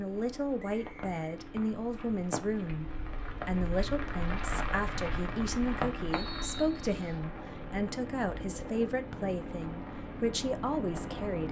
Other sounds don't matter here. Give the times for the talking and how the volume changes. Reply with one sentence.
You can hear the talking from 0.0 to 11.4 s, at a steady volume.